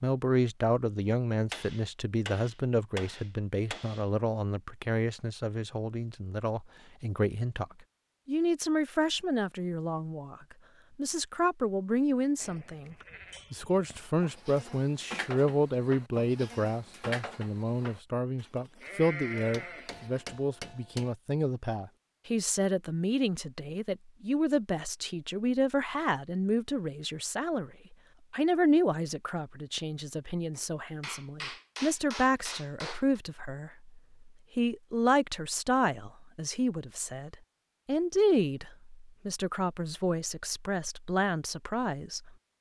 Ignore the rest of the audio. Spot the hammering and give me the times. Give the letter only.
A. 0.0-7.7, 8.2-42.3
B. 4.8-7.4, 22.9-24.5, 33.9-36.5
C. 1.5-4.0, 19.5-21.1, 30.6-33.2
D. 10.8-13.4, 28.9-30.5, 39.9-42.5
C.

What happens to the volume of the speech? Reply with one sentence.
The volume of the speech stays about the same.